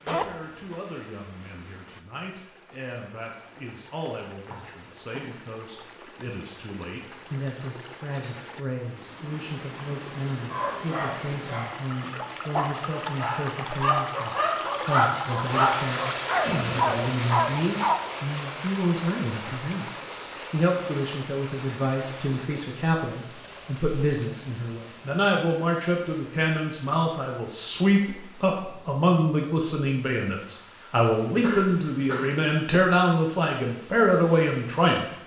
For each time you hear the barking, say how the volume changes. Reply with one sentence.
The barking can be heard from 10.5 to 18.2 s, getting louder.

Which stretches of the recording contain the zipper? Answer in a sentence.
You can hear the zipper from 0.1 to 0.8 s.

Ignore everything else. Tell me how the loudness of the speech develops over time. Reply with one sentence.
The loudness of the speech goes up.